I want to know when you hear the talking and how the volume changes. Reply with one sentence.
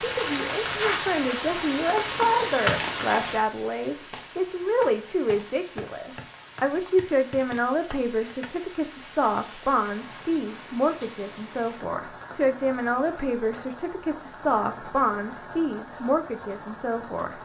The talking can be heard from 0.0 to 17.4 s, at a steady volume.